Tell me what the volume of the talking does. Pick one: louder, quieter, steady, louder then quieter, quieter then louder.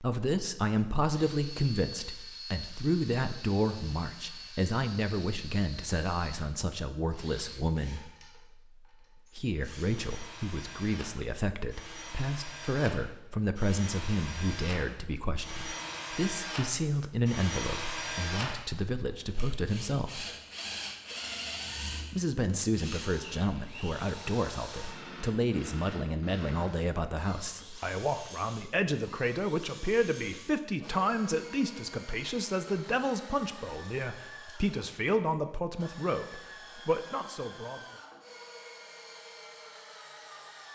steady.